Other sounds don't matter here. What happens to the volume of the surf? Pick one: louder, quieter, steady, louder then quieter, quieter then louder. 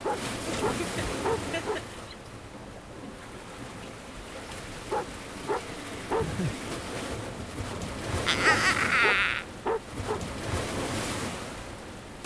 quieter then louder.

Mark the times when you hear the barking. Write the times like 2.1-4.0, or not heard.
0.0-1.8, 4.9-6.2, 8.4-10.2.